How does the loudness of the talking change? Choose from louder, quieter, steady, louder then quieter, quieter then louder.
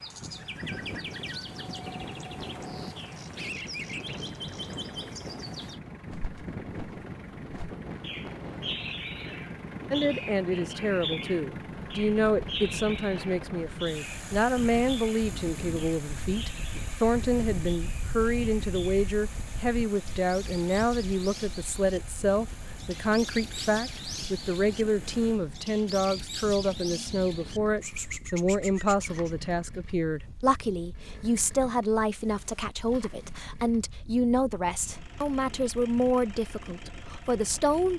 steady.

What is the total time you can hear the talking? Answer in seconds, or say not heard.
28 s.